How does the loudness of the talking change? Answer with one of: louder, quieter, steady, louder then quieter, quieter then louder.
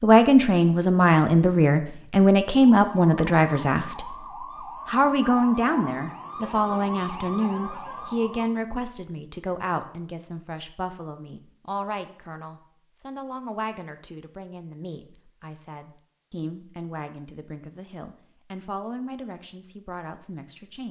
quieter.